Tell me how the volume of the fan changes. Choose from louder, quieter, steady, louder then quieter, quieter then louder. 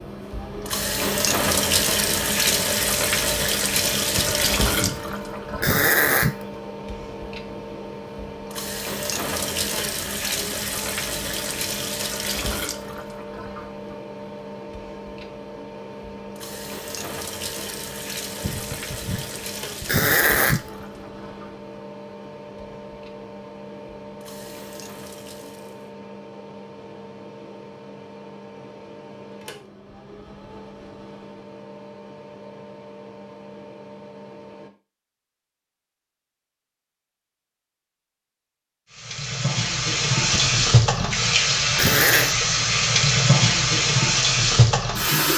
quieter.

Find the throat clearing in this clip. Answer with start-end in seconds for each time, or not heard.
4.2-6.3, 18.4-20.6, 40.3-42.4.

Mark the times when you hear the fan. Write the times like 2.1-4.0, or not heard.
0.0-34.7.